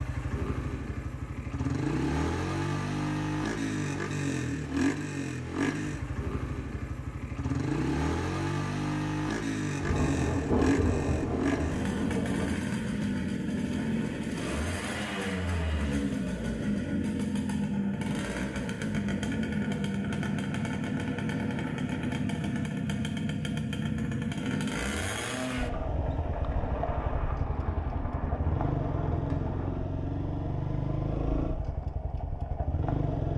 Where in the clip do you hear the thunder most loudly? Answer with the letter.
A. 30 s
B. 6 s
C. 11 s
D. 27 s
C.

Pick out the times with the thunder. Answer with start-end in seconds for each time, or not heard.
9.8-12.6, 25.7-29.9.